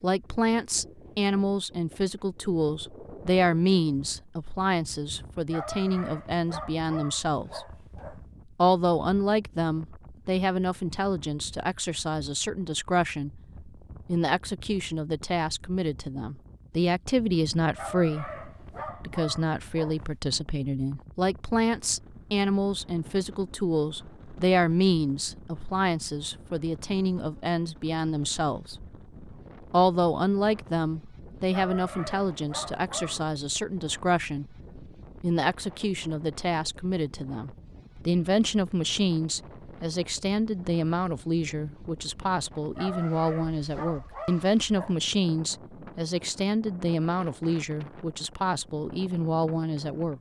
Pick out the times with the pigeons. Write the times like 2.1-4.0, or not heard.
not heard.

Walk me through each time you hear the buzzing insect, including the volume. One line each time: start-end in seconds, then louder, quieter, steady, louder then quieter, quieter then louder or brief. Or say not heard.
not heard.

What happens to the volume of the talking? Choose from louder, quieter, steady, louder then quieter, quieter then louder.
steady.